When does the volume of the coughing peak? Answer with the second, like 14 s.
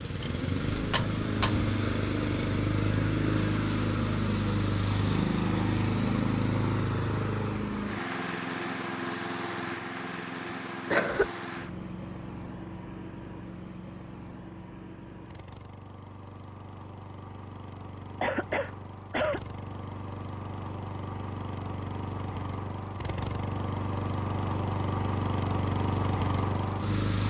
11 s.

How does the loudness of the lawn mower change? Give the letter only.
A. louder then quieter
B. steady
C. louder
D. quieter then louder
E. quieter
D.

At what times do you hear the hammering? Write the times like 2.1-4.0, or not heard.
0.2-1.7.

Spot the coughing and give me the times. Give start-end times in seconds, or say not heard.
10.9-11.3, 18.2-19.4.